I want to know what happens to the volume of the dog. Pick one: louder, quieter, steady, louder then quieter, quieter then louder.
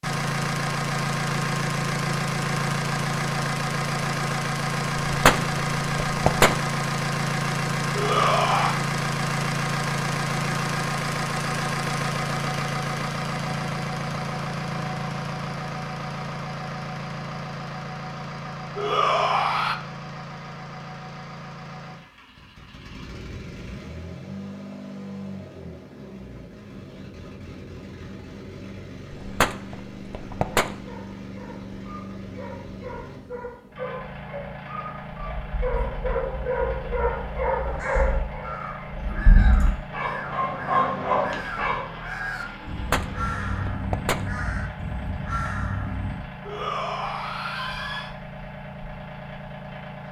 louder.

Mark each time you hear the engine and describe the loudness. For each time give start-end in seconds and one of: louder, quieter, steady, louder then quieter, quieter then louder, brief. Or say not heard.
0.0-50.0 quieter.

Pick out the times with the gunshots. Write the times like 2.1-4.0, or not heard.
5.0-6.7, 29.1-30.8, 42.7-44.3.